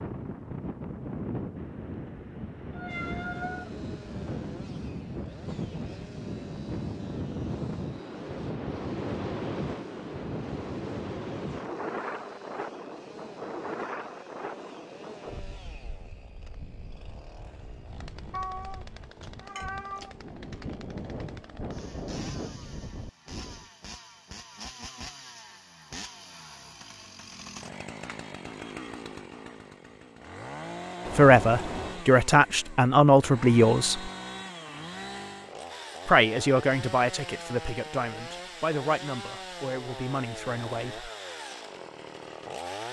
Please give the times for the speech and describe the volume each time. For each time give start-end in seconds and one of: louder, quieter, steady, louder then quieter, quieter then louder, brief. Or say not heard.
31.1-34.1 brief
36.0-41.1 quieter.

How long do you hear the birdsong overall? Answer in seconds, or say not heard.
not heard.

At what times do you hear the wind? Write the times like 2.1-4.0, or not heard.
0.0-23.6.